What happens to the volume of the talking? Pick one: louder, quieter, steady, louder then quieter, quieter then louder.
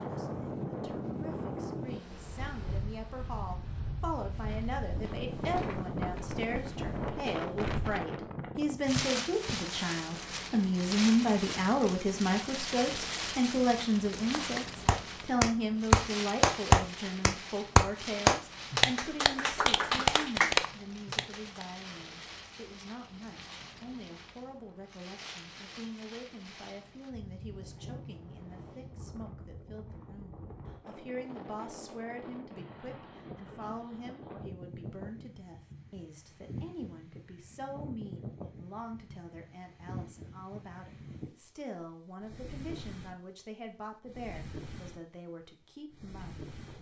louder then quieter.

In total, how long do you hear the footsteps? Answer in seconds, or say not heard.
5 s.